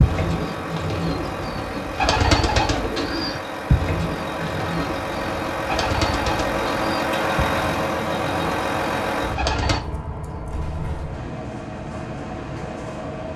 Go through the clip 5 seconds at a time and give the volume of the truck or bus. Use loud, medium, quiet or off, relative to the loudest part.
medium, loud, medium.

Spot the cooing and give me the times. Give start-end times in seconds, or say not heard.
0.0-9.8.